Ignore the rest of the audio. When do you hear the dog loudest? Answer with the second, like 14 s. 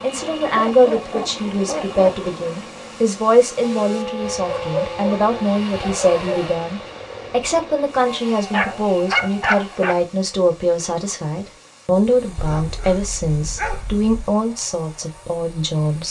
9 s.